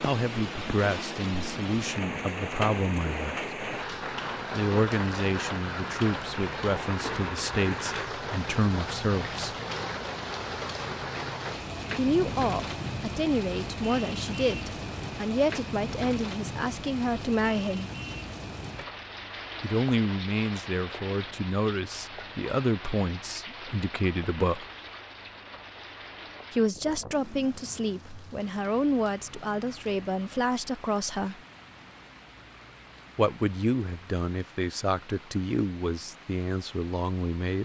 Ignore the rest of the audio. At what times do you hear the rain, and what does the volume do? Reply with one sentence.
The rain can be heard from 0.0 to 37.5 s, getting quieter.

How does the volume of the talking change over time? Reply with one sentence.
The volume of the talking stays about the same.